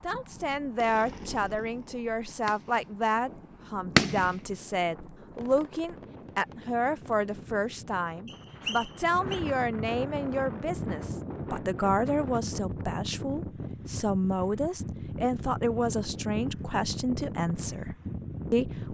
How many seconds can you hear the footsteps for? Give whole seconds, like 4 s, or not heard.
not heard.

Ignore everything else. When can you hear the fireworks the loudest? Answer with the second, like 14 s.
4 s.